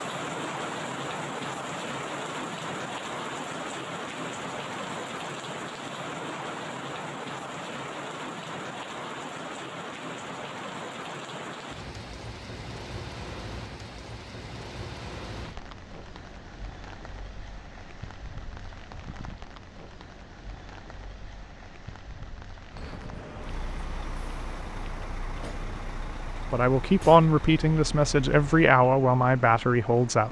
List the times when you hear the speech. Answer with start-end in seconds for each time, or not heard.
26.5-30.2.